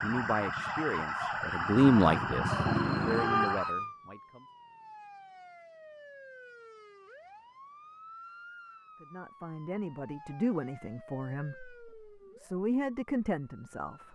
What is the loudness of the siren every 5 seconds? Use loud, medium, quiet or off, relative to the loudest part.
loud, quiet, quiet.